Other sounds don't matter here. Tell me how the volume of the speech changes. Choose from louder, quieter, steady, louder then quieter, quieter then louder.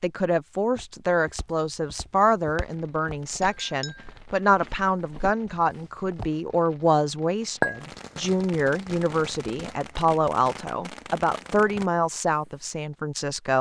steady.